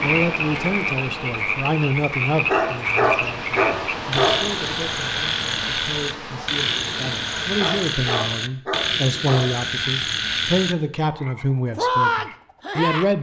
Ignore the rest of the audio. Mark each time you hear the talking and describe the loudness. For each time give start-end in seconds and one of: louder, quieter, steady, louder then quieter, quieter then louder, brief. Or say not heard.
0.0-13.1 quieter then louder.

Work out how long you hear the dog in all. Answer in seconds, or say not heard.
4 s.